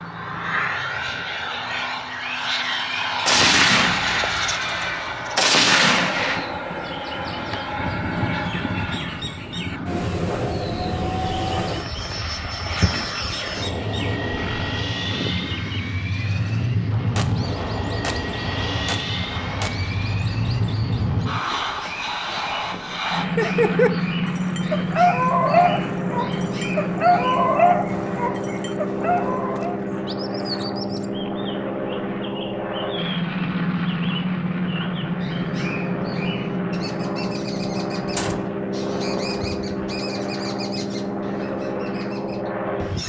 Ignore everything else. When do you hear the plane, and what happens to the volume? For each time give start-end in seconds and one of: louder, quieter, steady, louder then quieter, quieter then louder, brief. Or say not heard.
0.0-43.0 steady.